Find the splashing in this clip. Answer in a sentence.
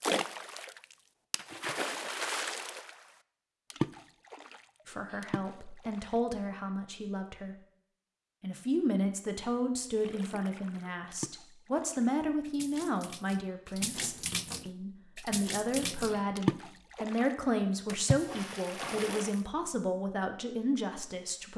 The splashing can be heard from 0.0 to 3.1 s, from 3.7 to 6.2 s and from 9.9 to 19.4 s.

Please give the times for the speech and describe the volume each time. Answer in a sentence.
You can hear the speech briefly from 4.8 to 7.5 s; and from 8.4 to 21.5 s, at a steady volume.